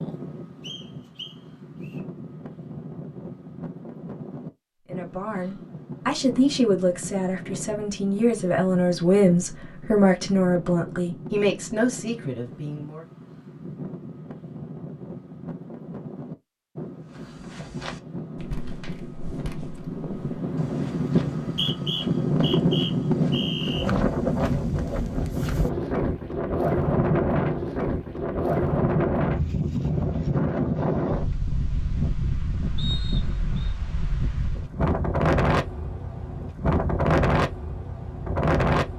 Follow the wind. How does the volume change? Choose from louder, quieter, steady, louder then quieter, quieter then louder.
louder.